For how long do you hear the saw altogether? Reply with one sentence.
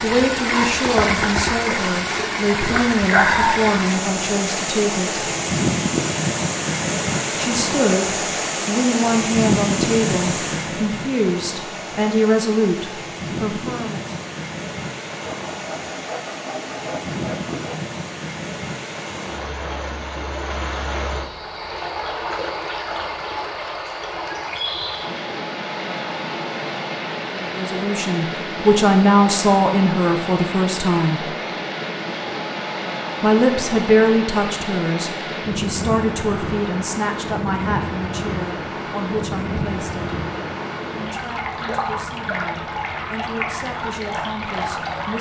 You can hear the saw for 3 seconds altogether.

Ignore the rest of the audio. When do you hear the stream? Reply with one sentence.
The stream can be heard from 0.0 to 45.1 s.